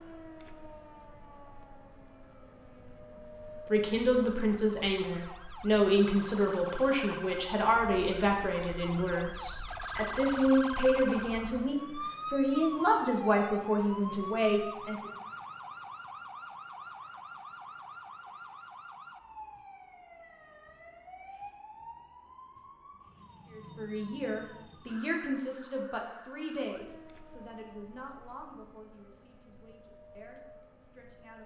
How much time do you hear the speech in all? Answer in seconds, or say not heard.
19 s.